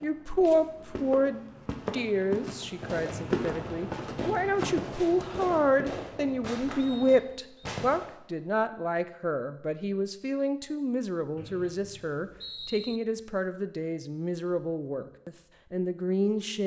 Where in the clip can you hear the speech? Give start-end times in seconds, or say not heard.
0.0-16.6.